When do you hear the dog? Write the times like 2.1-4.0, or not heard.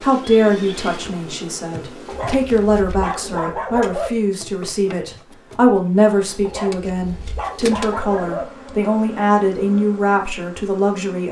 2.0-4.1, 6.5-8.4.